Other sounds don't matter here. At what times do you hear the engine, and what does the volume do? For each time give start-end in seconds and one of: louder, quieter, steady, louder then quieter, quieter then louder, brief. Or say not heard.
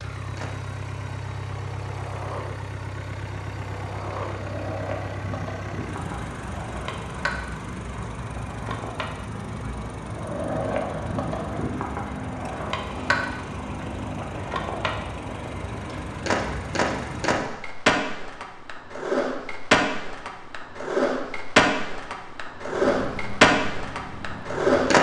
0.0-17.6 steady
22.6-24.9 brief.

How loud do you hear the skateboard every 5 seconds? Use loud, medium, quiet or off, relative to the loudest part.
quiet, quiet, medium, loud, loud.